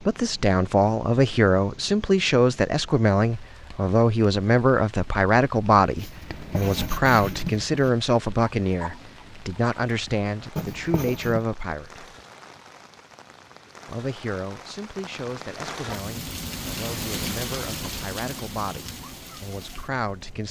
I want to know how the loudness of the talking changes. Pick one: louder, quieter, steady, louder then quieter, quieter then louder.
quieter.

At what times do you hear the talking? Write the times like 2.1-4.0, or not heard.
0.1-12.1, 13.8-20.4.